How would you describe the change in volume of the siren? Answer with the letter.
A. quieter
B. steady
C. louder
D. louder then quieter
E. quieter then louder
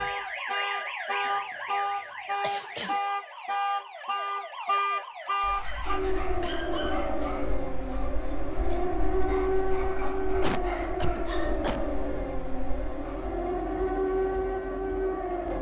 B.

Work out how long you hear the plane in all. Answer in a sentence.
You can't hear the plane here.